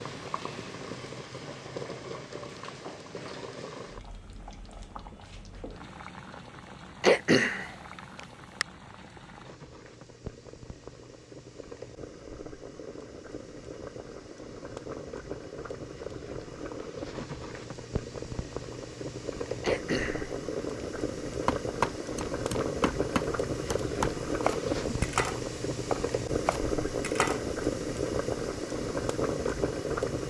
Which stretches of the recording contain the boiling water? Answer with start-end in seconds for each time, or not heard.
0.0-30.2.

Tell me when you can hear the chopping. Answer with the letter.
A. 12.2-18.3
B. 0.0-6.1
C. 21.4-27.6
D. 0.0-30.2
C.